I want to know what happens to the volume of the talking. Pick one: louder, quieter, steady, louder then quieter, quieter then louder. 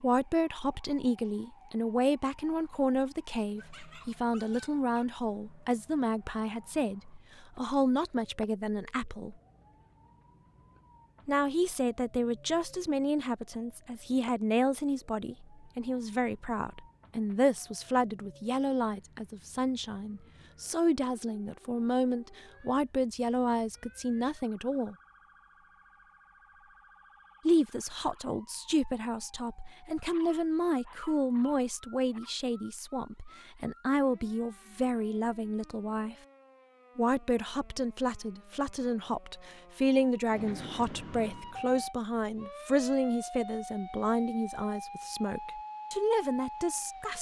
steady.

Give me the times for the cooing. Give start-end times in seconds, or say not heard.
not heard.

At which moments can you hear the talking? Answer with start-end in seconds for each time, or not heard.
0.0-9.3, 11.2-24.9, 27.4-36.1, 37.0-47.1.